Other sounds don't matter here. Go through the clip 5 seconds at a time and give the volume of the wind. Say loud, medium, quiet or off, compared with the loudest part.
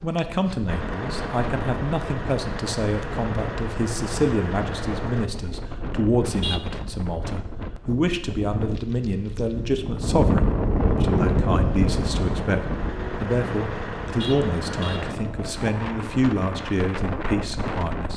medium, medium, loud, medium.